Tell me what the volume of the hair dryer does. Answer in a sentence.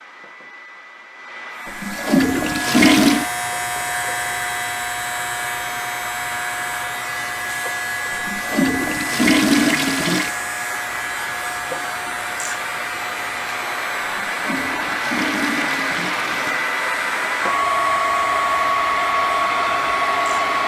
The loudness of the hair dryer goes up.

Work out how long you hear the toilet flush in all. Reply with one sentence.
The toilet flush can be heard for 6 seconds in total.